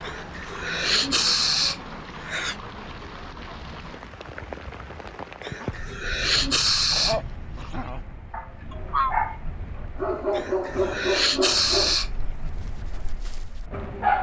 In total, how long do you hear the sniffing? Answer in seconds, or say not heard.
6 s.